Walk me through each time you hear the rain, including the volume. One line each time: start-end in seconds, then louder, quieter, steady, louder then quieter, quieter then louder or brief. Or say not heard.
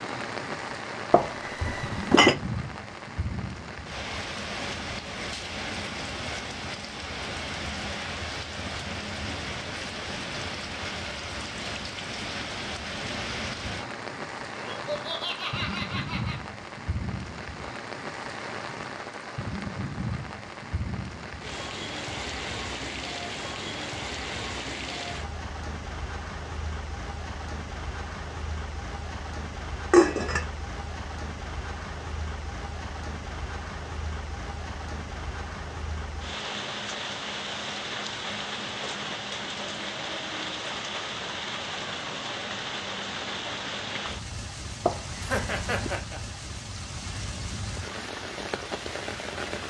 0.0-49.6 steady.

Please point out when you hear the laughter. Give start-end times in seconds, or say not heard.
14.6-16.4, 45.2-46.2.